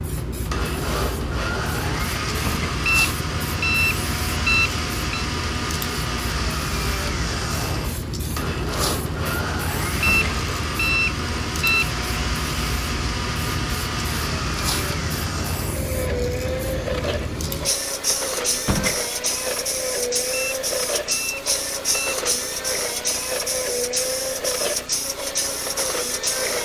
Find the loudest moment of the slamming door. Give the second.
19 s.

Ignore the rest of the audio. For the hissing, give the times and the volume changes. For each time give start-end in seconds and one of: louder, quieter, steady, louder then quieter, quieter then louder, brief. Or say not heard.
0.0-26.6 steady.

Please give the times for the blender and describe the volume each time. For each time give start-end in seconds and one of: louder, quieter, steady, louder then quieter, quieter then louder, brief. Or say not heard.
0.0-26.6 steady.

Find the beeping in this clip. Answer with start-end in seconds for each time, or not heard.
2.9-5.2, 10.0-11.9, 20.3-22.2.